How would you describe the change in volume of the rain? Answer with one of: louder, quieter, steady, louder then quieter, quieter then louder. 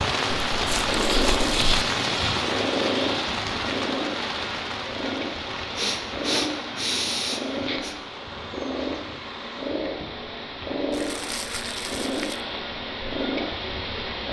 quieter.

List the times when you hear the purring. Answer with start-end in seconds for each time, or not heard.
0.0-14.2.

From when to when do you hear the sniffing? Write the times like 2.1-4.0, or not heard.
5.8-8.0.